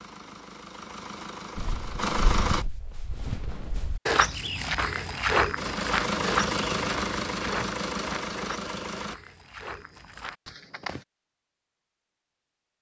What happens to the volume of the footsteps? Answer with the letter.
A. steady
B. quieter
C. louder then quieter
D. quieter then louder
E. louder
C.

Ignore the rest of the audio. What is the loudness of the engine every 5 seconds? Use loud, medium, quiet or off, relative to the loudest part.
loud, loud, off.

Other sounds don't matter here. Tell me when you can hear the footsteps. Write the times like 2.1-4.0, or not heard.
1.6-11.1.